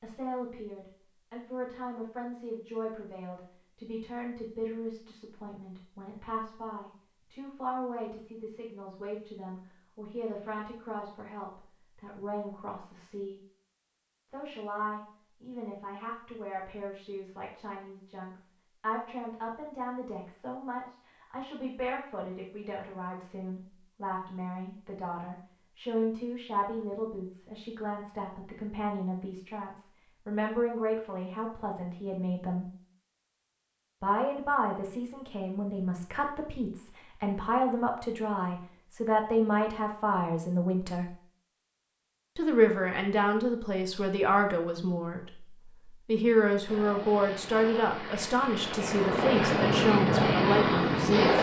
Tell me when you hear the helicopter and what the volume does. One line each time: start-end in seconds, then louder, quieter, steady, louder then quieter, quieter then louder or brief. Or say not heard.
46.6-51.3 louder.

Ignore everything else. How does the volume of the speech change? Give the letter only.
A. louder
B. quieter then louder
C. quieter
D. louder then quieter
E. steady
A.